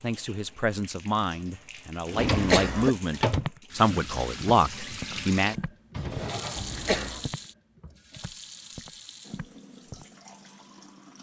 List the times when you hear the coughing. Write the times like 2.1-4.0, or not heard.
2.1-3.0, 6.5-7.3.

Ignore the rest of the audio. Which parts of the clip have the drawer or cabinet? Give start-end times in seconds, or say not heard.
2.0-3.5, 5.9-6.7.